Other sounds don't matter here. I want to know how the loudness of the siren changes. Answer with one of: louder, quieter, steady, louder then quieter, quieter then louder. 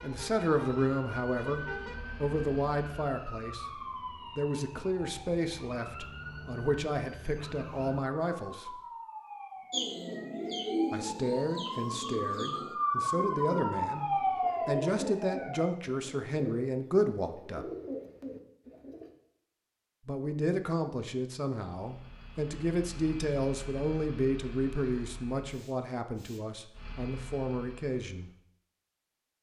louder.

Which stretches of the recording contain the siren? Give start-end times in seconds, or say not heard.
0.0-15.7.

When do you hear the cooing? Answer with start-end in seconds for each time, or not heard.
9.7-19.1.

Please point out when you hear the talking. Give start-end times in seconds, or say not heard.
0.0-8.8, 10.9-14.1, 14.7-17.6, 20.1-28.3.